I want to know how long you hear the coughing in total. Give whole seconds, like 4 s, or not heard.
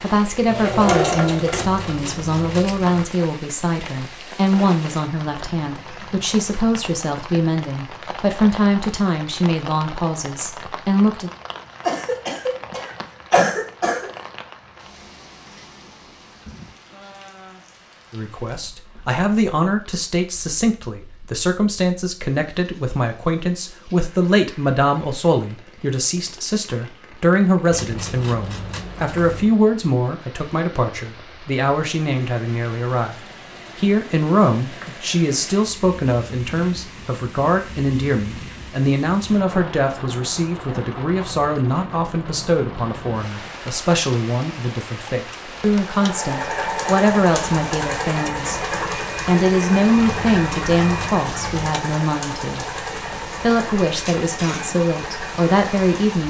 2 s.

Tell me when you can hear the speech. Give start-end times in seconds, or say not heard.
0.0-11.3, 18.1-33.1, 33.8-48.6, 49.2-56.2.